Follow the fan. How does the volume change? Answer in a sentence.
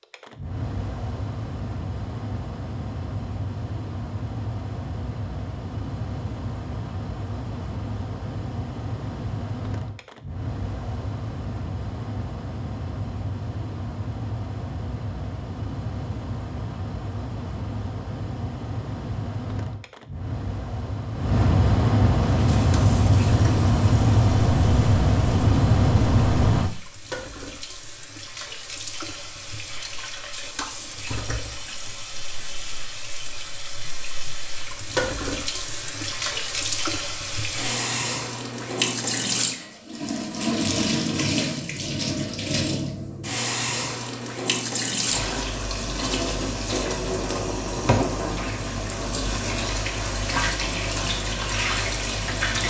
The loudness of the fan goes up.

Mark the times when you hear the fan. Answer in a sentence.
You can hear the fan from 0.0 to 26.7 s.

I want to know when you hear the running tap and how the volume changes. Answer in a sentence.
The running tap can be heard from 22.2 to 52.6 s, getting louder.